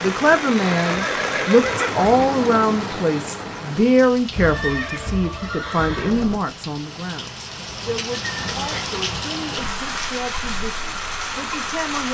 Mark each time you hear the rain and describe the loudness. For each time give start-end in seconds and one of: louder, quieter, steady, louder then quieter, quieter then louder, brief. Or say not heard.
0.0-12.1 quieter then louder.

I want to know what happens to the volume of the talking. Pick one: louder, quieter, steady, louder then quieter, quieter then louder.
quieter.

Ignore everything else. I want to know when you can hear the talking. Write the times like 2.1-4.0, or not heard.
0.0-12.1.